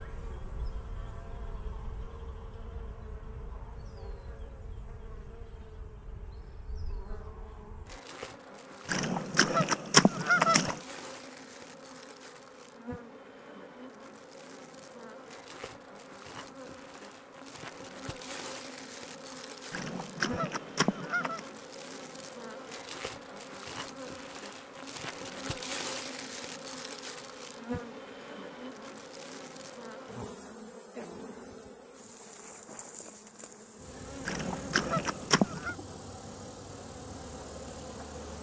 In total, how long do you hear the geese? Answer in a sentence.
You can hear the geese for 5 seconds altogether.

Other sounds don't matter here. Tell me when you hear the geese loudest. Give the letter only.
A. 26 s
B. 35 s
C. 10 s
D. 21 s
C.